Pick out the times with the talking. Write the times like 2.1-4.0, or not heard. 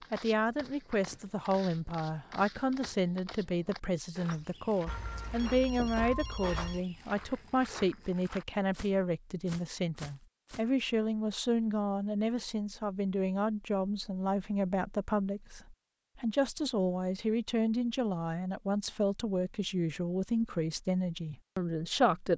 0.1-22.3.